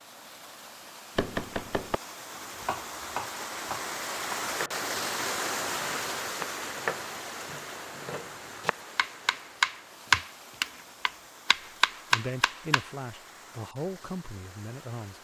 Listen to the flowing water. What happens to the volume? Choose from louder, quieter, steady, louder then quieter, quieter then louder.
louder then quieter.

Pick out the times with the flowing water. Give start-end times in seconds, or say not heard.
0.0-15.1.